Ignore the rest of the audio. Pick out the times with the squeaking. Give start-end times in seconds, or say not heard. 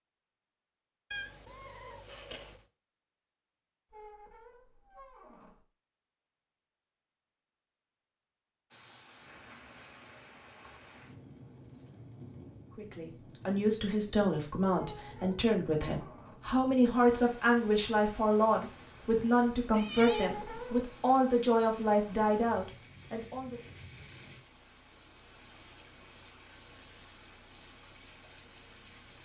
3.9-5.7, 14.8-16.5, 20.1-20.9.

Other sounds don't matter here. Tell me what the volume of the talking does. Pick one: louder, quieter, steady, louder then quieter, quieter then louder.
steady.